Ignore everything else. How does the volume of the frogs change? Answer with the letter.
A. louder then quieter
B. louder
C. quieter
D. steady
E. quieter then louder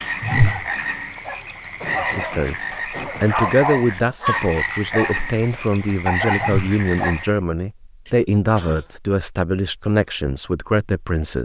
D.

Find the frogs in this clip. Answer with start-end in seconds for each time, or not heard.
0.0-7.4.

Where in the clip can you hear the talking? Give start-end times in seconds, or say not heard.
1.9-11.4.